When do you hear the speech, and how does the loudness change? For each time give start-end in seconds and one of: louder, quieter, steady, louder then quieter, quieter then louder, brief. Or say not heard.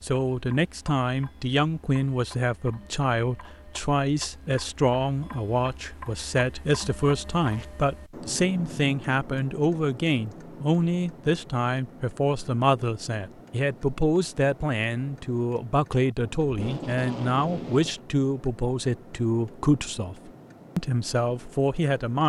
0.0-22.2 steady.